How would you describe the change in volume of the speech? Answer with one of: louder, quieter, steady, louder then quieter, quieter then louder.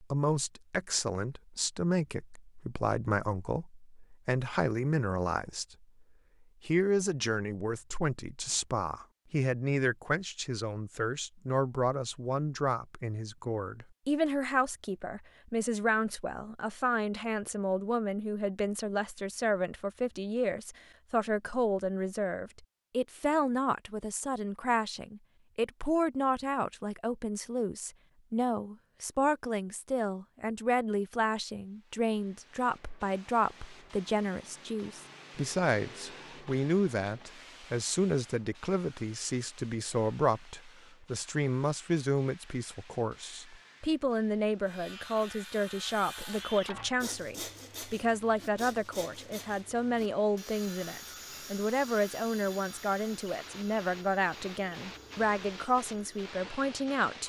steady.